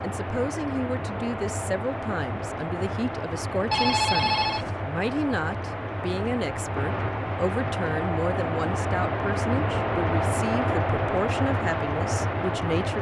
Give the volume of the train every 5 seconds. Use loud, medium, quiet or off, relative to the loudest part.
medium, loud, loud.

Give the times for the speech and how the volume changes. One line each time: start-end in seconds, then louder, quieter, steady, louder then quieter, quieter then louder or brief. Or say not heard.
0.0-12.9 steady.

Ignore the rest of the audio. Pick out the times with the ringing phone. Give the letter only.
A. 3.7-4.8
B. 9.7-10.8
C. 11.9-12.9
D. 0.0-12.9
A.